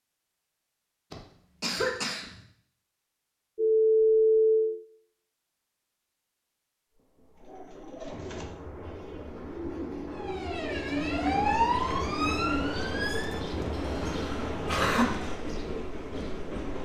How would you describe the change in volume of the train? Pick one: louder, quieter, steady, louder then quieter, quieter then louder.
louder.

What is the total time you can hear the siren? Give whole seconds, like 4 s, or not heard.
3 s.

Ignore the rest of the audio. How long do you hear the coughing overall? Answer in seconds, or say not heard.
3 s.